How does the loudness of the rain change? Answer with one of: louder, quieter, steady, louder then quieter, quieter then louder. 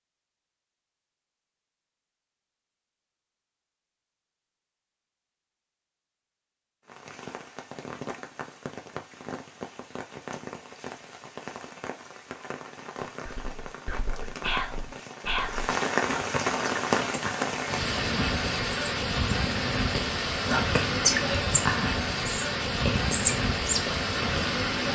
louder.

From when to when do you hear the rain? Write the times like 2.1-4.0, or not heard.
6.8-24.8.